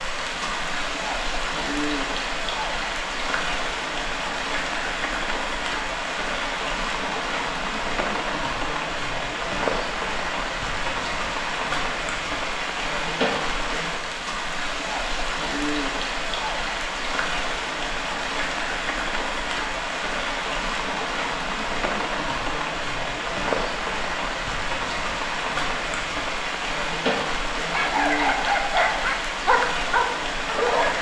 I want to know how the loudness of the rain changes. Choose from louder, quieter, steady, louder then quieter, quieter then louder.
steady.